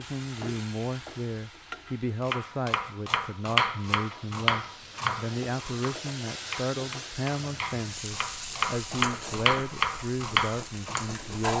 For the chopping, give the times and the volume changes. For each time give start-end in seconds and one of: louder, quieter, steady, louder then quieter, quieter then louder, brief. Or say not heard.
2.2-11.1 quieter then louder.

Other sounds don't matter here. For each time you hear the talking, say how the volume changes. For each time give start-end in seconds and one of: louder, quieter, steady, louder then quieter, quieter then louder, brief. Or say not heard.
0.0-11.5 steady.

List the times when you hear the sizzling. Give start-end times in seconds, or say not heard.
0.0-11.5.